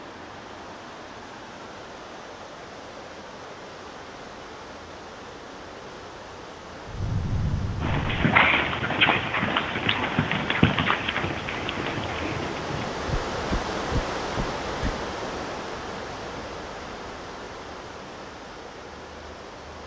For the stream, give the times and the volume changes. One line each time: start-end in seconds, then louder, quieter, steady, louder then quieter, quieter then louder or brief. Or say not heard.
0.0-19.8 louder then quieter.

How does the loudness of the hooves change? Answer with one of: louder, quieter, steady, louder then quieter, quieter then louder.
quieter.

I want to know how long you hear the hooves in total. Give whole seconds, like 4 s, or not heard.
7 s.